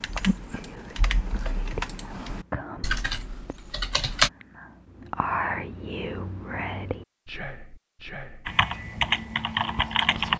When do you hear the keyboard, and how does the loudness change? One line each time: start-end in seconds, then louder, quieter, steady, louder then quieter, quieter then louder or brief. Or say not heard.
0.0-4.3 louder then quieter
8.4-10.3 brief.